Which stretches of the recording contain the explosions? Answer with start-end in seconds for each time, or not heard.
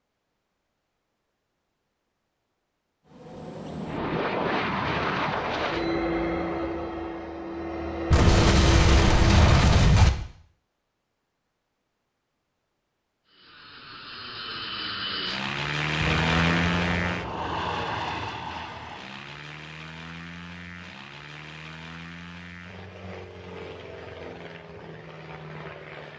8.1-10.1, 16.0-18.4.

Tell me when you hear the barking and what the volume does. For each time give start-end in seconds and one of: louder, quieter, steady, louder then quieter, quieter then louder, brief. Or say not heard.
not heard.